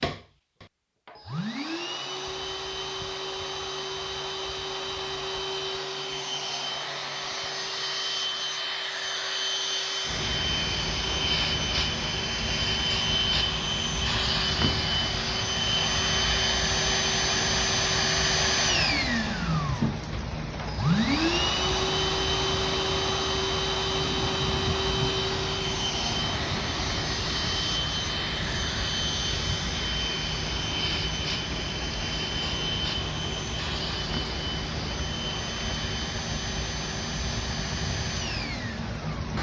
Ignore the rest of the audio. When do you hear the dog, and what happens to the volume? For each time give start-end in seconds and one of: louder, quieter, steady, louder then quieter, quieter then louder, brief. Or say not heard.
not heard.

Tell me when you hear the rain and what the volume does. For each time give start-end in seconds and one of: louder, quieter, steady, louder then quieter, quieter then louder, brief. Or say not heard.
10.1-39.3 steady.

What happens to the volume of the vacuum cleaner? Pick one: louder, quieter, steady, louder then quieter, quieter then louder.
louder then quieter.